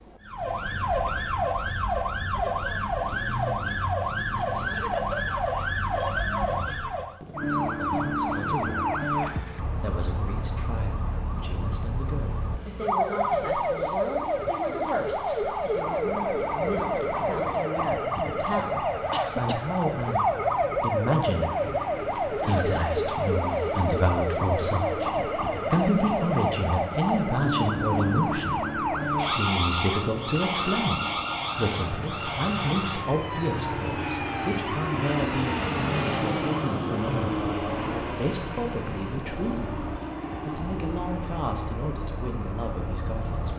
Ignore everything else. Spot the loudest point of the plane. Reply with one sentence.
The loudest moment of the plane is at 36 seconds.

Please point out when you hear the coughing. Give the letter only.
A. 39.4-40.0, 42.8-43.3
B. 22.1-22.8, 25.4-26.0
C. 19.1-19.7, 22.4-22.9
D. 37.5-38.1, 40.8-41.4
C.